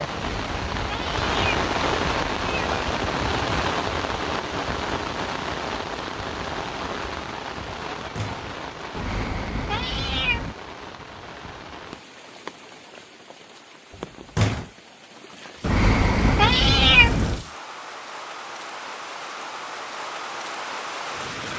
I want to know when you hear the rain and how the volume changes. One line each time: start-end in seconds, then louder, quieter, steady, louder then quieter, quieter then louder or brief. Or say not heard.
0.0-21.5 quieter then louder.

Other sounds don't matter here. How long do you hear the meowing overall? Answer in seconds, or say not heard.
6 s.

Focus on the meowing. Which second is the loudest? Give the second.
17 s.